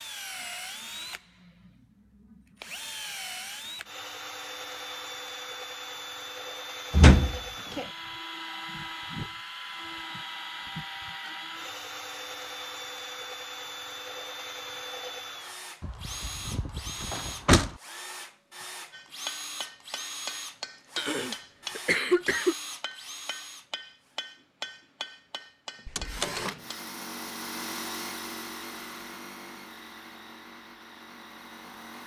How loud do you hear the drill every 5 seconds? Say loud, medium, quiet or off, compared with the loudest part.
loud, loud, loud, loud, loud, loud, medium.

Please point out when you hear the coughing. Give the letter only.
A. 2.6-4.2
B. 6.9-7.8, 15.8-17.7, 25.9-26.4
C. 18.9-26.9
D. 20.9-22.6
D.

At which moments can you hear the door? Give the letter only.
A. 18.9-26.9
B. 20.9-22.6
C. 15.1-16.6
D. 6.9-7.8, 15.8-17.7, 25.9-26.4
D.